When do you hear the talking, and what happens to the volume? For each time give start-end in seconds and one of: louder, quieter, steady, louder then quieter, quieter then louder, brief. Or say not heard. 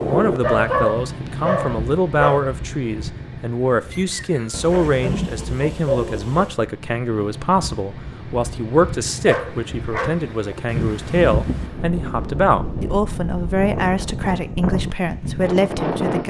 0.0-16.2 steady.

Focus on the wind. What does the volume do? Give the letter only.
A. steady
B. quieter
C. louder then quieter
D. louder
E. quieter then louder
E.